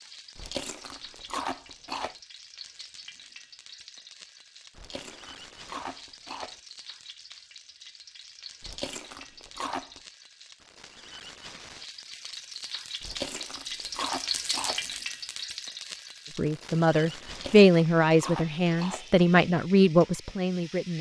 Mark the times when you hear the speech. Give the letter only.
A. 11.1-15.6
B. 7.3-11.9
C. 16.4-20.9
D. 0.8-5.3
C.